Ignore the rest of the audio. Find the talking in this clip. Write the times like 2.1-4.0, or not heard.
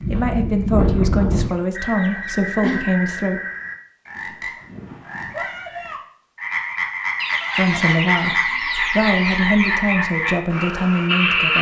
0.0-3.4, 7.5-11.5.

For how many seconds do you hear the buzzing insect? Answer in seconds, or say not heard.
not heard.